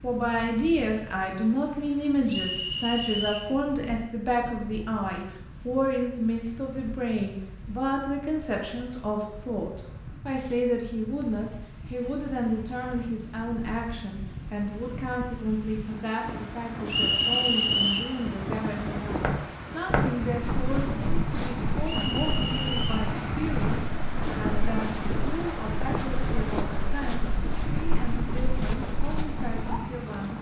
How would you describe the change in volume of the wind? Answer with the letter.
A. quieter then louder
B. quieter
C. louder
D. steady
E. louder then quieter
C.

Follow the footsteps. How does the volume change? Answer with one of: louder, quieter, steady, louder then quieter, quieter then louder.
quieter.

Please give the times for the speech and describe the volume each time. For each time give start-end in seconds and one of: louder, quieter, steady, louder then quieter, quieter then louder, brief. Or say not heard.
0.0-30.3 quieter.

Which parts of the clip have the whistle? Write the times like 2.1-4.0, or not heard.
2.2-3.5, 16.9-18.1, 21.9-23.1.